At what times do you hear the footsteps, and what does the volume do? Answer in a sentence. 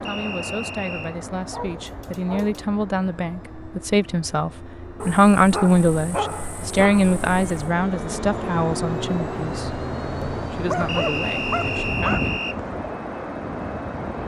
You can't hear the footsteps here.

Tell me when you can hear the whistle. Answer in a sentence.
The whistle can be heard from 0.1 to 1.1 s and from 10.8 to 12.6 s.